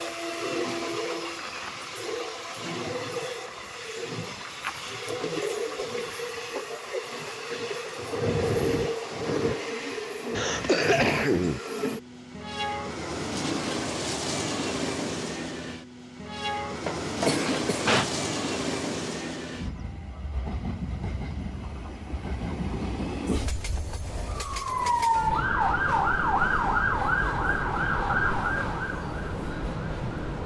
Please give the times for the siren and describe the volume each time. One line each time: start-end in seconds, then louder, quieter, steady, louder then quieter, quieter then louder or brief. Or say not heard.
24.2-30.4 quieter.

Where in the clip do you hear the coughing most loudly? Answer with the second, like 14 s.
11 s.